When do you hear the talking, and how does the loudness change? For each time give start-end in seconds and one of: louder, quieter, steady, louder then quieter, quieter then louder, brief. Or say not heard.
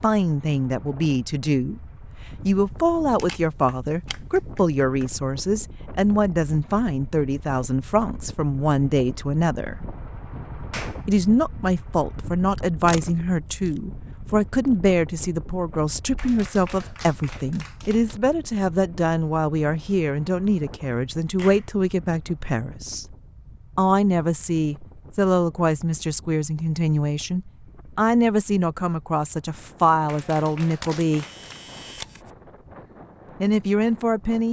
0.0-9.8 steady
11.1-23.1 steady
23.8-31.2 steady
33.4-34.4 brief.